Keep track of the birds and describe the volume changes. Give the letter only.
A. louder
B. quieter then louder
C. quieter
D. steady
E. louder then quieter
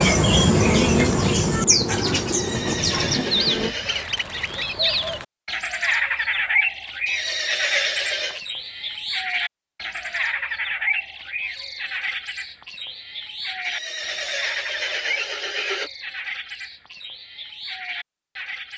C.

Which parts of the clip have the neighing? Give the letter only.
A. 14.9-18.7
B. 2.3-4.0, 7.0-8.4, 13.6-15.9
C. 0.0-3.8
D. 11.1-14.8
B.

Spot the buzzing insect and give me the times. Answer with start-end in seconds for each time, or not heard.
0.0-3.8.